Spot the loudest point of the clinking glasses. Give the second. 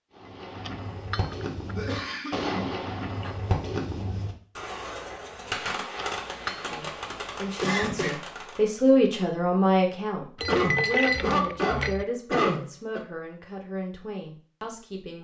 11 s.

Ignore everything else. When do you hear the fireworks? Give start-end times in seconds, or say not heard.
0.1-8.8.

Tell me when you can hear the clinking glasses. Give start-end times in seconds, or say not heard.
0.6-1.8, 6.0-7.5, 10.3-12.1.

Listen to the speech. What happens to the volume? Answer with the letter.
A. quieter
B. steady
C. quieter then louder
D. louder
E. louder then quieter
E.